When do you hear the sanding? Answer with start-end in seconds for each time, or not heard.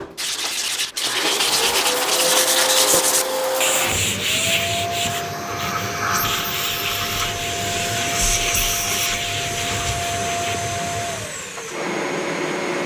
0.1-10.6.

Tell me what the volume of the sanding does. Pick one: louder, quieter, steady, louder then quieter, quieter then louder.
quieter.